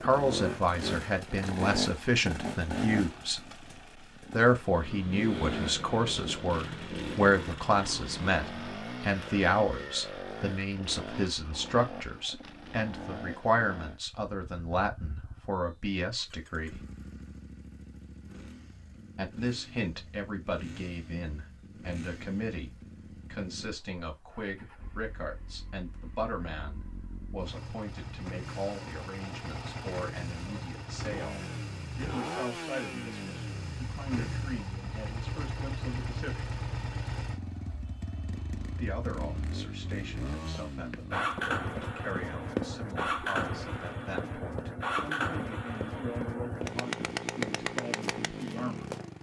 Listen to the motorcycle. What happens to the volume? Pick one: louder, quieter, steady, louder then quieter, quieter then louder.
quieter then louder.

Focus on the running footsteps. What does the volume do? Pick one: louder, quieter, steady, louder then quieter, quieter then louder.
quieter then louder.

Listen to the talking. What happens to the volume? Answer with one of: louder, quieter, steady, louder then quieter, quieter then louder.
quieter.